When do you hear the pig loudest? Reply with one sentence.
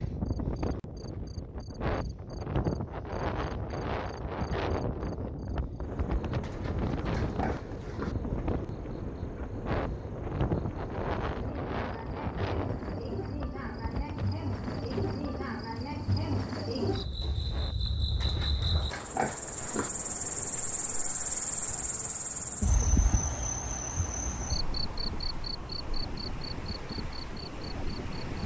The volume of the pig peaks at 19 seconds.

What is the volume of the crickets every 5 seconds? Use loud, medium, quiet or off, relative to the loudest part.
quiet, medium, medium, loud, loud, medium.